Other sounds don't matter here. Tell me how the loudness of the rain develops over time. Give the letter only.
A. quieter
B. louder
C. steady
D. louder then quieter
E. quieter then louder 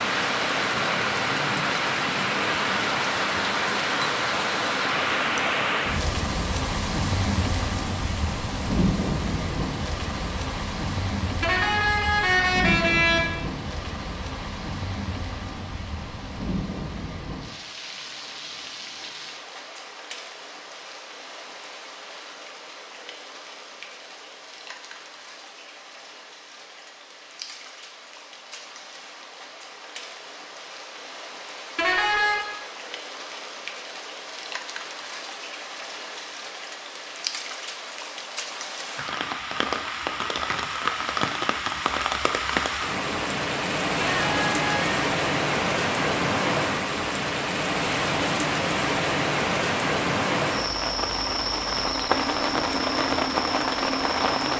E.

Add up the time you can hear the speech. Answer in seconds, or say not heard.
not heard.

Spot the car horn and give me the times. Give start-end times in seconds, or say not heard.
11.4-13.3, 31.8-32.5, 44.0-45.0.